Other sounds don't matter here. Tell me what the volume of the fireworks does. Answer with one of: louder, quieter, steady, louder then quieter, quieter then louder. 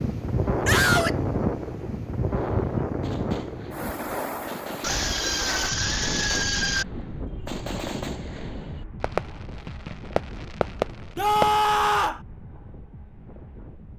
louder.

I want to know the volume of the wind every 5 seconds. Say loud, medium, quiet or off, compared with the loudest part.
loud, medium, quiet.